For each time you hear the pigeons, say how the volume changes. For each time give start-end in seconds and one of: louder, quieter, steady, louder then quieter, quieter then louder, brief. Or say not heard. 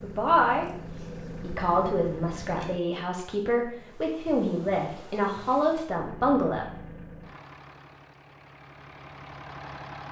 not heard.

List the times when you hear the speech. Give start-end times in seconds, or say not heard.
0.0-0.7, 1.4-6.7.